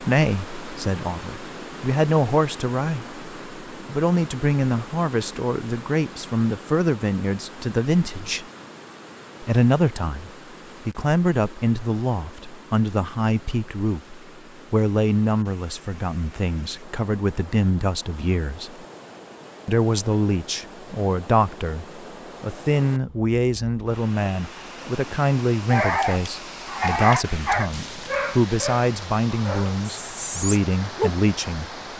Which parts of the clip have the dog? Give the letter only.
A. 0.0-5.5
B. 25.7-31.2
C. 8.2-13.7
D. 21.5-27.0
B.